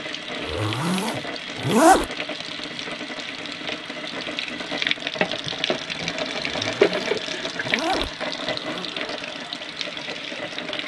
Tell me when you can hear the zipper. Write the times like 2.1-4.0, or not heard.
0.4-2.0, 6.5-8.9.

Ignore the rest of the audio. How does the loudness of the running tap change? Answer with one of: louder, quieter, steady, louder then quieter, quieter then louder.
louder then quieter.